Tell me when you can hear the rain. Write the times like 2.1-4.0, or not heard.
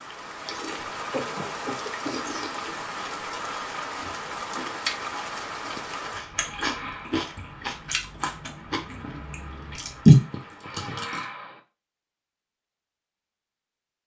0.0-10.8.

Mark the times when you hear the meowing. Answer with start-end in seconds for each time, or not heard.
not heard.